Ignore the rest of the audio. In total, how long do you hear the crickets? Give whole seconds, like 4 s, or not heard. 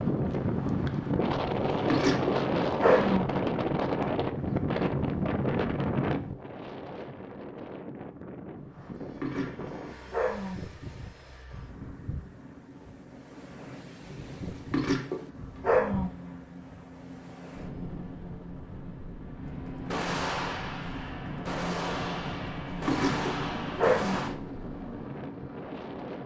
not heard.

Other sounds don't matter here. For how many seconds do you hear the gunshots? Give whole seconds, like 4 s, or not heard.
5 s.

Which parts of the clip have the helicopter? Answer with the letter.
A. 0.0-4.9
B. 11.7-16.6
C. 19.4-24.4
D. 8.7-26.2
D.